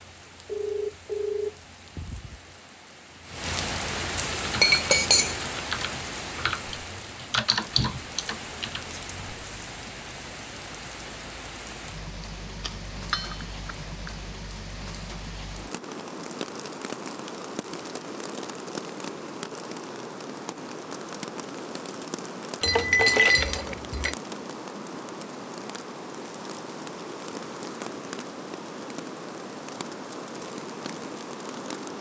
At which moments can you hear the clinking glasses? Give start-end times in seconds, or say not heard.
4.6-5.3, 12.6-14.2, 22.6-24.1.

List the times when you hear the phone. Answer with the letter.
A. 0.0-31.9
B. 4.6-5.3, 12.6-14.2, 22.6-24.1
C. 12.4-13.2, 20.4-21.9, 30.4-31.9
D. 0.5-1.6
D.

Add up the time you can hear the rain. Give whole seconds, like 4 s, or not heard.
32 s.